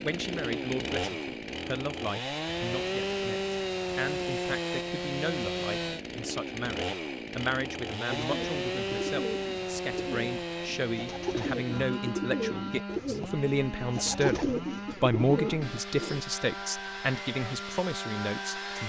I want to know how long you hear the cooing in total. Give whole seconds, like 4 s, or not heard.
8 s.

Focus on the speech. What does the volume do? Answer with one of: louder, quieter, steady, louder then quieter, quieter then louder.
louder.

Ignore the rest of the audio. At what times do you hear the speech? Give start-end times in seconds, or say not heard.
0.0-18.8.